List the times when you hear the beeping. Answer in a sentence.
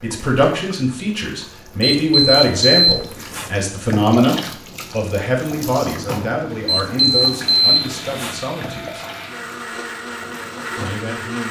You can hear the beeping from 1.8 to 3.5 s and from 6.7 to 8.4 s.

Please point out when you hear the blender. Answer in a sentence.
You can hear the blender from 6.5 to 11.4 s.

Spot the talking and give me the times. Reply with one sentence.
You can hear the talking from 0.0 to 9.1 s and from 10.8 to 11.4 s.